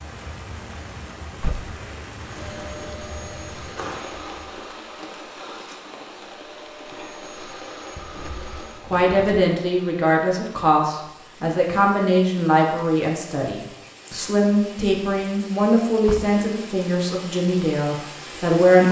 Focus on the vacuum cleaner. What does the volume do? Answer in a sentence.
The loudness of the vacuum cleaner goes down, then up.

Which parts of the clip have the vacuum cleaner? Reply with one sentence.
You can hear the vacuum cleaner from 2.2 to 8.8 s.